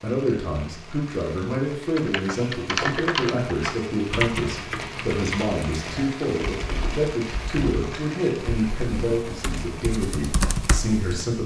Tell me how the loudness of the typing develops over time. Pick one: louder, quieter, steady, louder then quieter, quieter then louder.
quieter then louder.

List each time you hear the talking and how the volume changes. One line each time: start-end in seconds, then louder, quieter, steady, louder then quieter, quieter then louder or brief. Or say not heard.
0.0-11.4 steady.